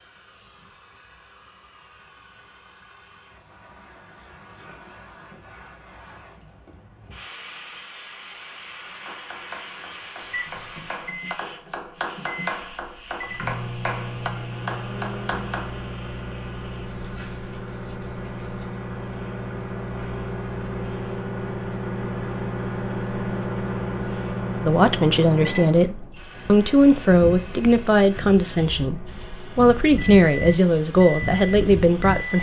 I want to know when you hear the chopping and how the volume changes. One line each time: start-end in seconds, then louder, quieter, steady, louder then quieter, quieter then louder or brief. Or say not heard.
9.1-15.8 louder.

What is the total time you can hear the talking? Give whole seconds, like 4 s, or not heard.
8 s.